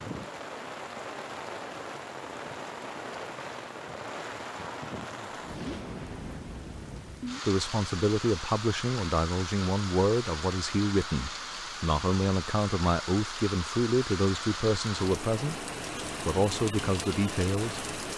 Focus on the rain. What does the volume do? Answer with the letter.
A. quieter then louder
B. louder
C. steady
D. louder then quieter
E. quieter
C.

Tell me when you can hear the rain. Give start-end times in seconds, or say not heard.
0.0-18.1.